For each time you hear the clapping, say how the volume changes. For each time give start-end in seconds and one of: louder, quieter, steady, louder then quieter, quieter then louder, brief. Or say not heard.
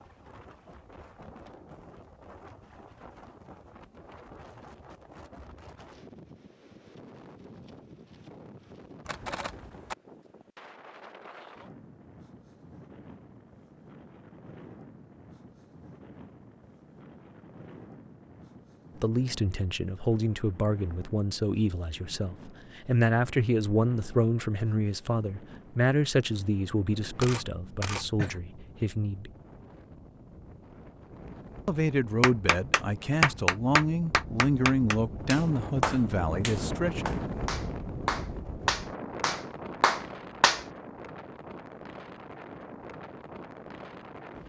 32.2-40.6 quieter.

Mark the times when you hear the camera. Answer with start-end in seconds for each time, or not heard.
9.1-9.9, 27.2-28.4.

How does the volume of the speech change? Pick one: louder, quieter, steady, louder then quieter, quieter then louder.
steady.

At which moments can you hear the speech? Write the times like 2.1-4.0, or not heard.
19.0-29.3, 31.6-37.0.